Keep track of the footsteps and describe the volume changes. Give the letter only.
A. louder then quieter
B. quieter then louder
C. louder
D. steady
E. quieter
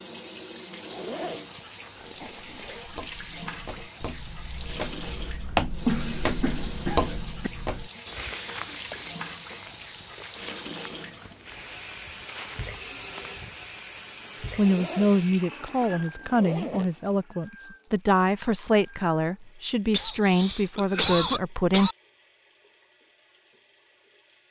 A.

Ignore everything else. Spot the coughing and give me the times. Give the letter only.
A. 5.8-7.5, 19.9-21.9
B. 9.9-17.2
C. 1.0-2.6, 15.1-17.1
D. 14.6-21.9
A.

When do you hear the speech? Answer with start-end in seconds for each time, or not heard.
14.6-21.9.